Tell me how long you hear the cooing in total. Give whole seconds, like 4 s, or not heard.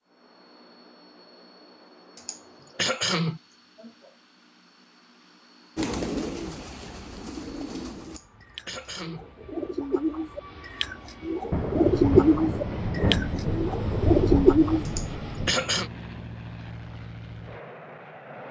9 s.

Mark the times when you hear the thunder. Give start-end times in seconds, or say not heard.
11.5-15.6.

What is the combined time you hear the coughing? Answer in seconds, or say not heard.
4 s.